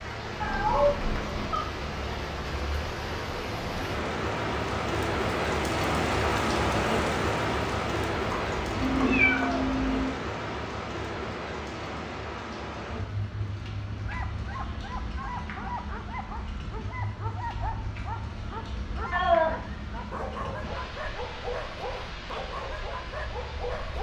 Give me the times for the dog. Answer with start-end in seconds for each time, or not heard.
14.0-23.9.